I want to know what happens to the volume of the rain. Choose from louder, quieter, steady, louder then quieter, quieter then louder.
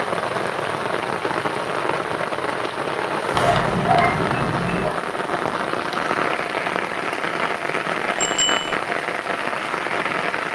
steady.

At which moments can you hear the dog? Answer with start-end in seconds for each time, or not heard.
3.3-5.0.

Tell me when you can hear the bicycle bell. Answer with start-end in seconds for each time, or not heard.
8.2-8.8.